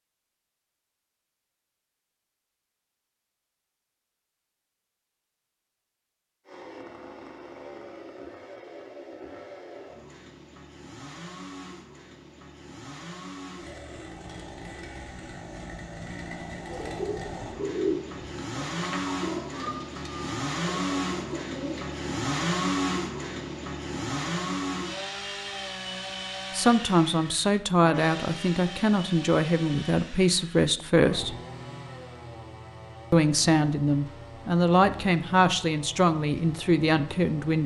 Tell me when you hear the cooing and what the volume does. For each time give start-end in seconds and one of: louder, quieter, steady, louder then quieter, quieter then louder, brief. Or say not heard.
16.6-22.0 quieter.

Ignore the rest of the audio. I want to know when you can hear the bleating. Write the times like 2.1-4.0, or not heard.
not heard.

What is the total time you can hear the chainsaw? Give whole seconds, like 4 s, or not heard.
31 s.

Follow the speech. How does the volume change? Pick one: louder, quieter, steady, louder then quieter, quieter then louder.
steady.